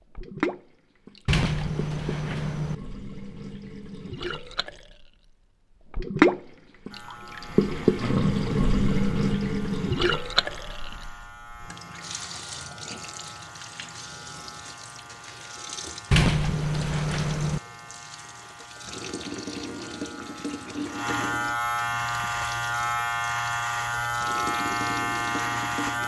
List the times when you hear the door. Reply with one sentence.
You can hear the door from 1.2 to 2.8 s and from 16.1 to 17.6 s.